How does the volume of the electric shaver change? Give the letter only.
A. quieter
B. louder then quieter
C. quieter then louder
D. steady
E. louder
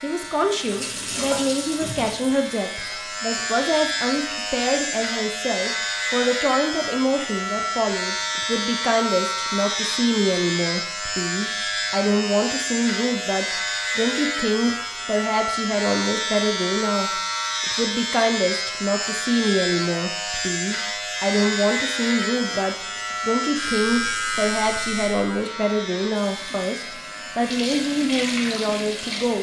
D.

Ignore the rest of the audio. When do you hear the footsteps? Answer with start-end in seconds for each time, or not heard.
not heard.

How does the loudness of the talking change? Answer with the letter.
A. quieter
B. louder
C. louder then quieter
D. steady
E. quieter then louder
D.